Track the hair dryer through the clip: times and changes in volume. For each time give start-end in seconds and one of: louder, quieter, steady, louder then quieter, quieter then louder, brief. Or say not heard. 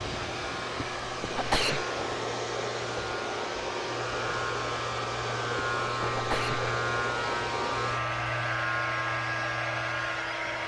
0.0-10.6 steady.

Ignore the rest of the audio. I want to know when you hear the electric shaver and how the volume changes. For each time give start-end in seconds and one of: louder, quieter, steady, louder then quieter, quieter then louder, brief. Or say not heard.
0.2-10.6 louder.